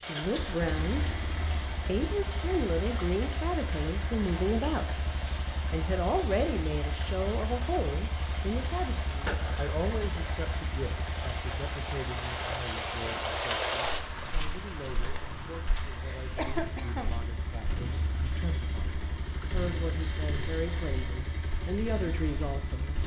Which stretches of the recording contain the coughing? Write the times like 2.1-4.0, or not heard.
9.2-9.8, 16.4-17.2.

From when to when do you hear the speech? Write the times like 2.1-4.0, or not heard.
0.0-1.2, 1.9-5.0, 5.7-23.0.